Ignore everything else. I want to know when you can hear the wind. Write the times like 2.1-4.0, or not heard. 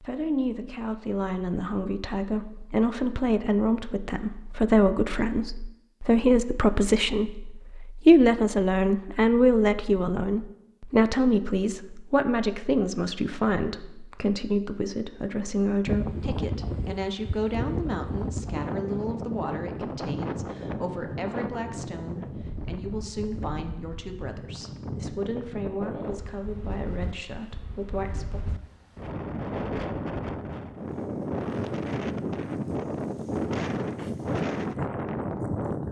15.8-35.8.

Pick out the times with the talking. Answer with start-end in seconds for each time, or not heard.
0.0-28.4.